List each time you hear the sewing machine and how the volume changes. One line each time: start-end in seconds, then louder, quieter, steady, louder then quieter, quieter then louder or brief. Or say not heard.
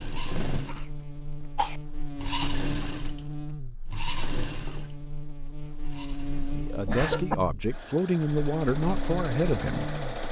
0.0-10.2 quieter then louder.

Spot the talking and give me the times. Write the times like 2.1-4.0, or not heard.
6.5-9.9.